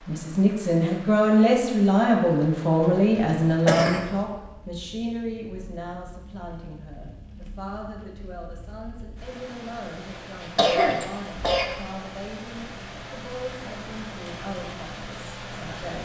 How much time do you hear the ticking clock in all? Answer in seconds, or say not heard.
not heard.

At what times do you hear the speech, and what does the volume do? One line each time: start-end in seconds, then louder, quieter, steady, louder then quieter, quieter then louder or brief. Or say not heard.
0.1-15.9 quieter.